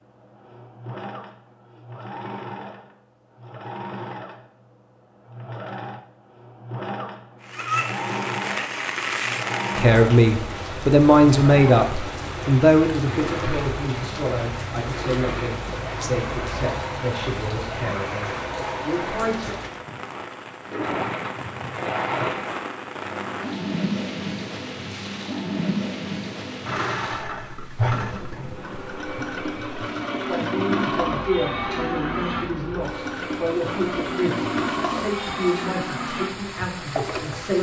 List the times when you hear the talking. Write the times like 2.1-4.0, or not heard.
9.8-19.6, 30.2-37.5.